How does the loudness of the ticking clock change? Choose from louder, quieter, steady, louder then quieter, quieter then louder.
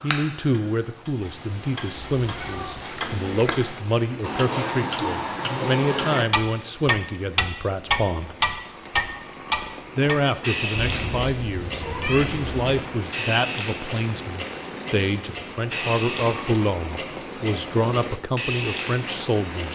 louder then quieter.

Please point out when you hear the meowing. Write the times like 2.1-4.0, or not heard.
2.1-2.9, 10.8-12.8.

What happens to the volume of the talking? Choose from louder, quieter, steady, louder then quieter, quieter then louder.
steady.